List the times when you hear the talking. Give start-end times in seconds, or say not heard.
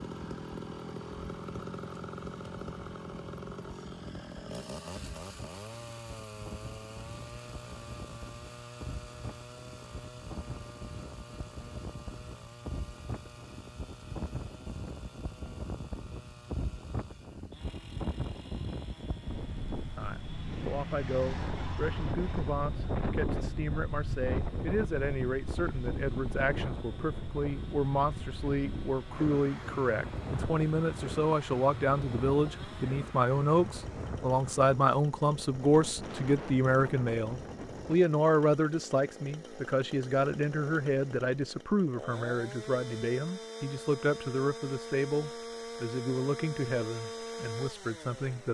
19.9-48.4.